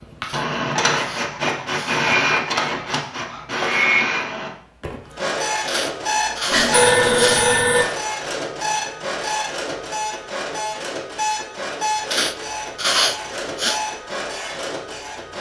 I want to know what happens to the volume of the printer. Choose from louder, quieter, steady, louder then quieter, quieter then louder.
quieter.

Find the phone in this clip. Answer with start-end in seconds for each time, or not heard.
6.5-7.8.